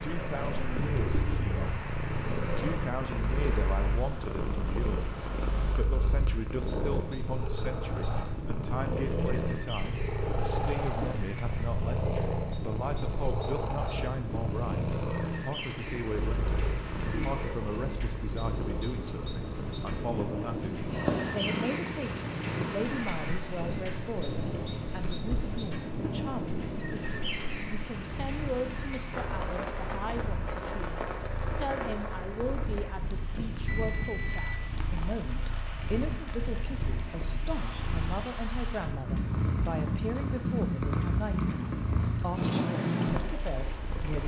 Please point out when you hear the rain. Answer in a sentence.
The rain can be heard from 0.0 to 44.2 s.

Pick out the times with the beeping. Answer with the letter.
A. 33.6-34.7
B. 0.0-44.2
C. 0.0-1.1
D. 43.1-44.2
A.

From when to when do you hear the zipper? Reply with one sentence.
The zipper can't be heard in this clip.